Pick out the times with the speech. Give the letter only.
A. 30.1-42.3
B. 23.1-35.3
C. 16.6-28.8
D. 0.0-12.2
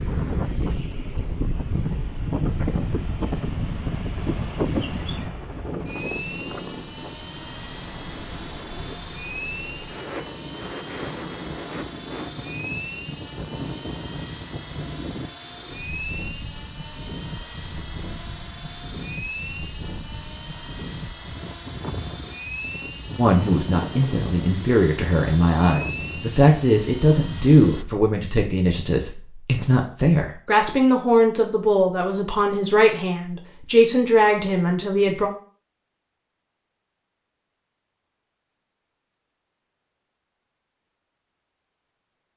B.